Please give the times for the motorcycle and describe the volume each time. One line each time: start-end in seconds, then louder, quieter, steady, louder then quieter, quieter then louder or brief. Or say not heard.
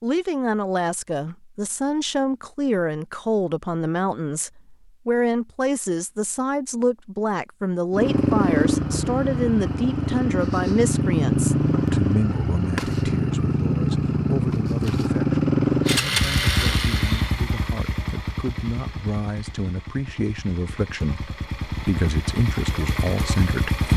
7.9-23.9 quieter.